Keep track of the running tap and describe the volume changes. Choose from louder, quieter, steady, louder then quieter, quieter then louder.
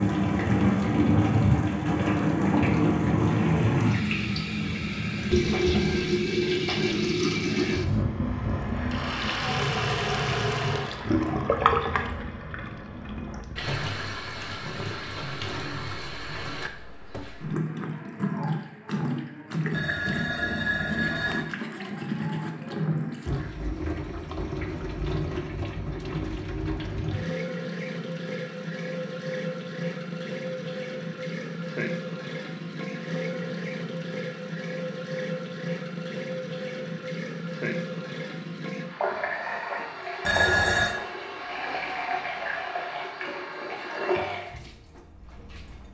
quieter.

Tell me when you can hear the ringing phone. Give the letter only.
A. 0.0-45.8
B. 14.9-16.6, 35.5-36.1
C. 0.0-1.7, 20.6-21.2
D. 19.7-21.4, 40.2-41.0
D.